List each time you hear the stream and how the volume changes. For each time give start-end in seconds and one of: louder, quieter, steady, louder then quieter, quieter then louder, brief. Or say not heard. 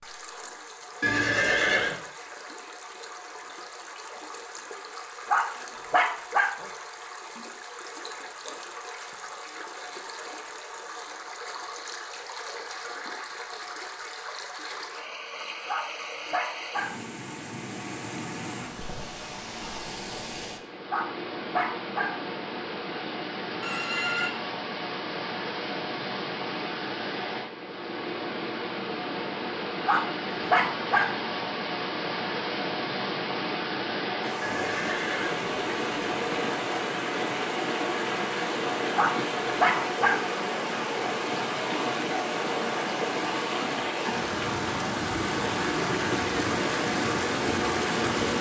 0.0-48.3 louder.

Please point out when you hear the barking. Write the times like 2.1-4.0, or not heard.
5.2-6.7, 15.7-17.1, 20.9-22.3, 29.9-31.2, 39.0-40.4.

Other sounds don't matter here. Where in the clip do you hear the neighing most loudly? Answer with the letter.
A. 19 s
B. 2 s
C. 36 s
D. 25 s
B.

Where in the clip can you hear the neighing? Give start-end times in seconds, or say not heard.
1.0-2.0, 23.6-24.3, 34.4-36.5.